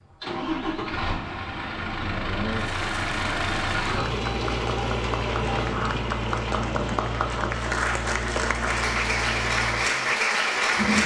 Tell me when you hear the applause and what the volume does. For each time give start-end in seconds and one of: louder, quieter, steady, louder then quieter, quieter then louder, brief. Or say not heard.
2.5-11.0 louder.